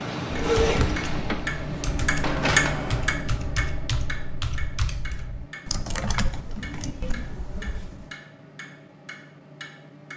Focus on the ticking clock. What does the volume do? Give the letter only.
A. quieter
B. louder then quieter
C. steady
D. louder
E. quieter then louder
A.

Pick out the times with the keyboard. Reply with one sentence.
You can hear the keyboard from 0.3 to 8.1 s.